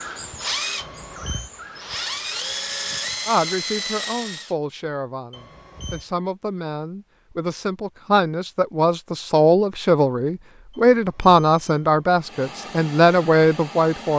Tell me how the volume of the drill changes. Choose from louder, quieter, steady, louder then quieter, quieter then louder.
quieter then louder.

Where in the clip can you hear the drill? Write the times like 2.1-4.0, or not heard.
0.0-4.5.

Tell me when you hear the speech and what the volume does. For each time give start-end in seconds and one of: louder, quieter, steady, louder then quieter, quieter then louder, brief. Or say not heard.
3.2-14.1 louder.